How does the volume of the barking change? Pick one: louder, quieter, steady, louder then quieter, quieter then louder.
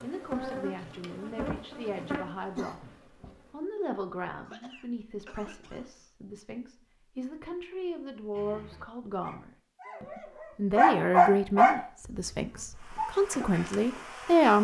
louder then quieter.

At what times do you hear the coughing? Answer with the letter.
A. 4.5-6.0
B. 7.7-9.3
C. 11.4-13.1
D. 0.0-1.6
A.